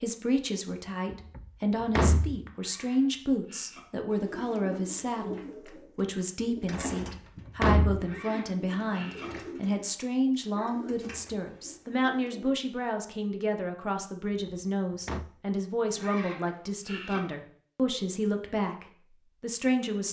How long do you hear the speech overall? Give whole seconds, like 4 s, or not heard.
20 s.